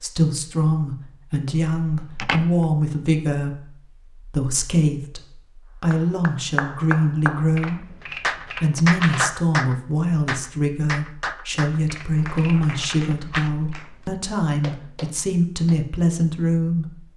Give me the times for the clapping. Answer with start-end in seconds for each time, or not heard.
5.9-15.8.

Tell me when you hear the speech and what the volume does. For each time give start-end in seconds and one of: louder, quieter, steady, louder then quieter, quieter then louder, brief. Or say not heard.
0.0-17.1 steady.